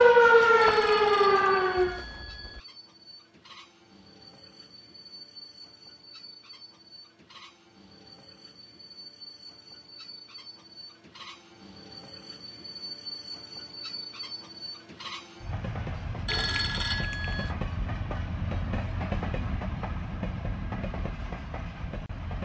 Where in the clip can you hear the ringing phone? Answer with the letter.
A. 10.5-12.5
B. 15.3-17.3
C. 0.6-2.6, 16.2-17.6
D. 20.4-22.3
C.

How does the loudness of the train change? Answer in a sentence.
The loudness of the train goes up.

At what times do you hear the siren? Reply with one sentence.
The siren can be heard from 0.0 to 2.0 s.